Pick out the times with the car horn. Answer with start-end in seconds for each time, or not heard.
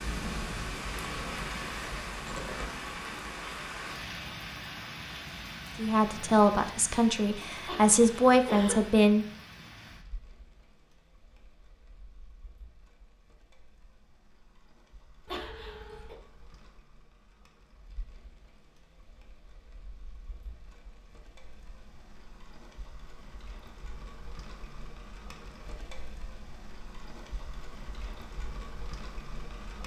not heard.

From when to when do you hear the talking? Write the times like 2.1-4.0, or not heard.
5.8-9.2.